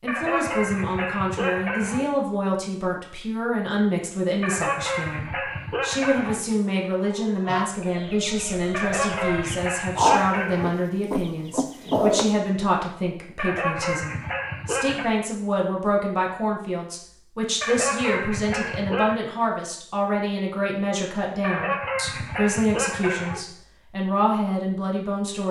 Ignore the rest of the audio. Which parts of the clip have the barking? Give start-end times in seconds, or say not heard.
0.1-2.0, 4.4-6.4, 8.7-10.8, 13.3-15.1, 17.6-19.2, 21.4-23.4.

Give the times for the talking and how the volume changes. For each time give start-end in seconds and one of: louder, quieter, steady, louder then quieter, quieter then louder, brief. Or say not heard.
0.0-25.4 steady.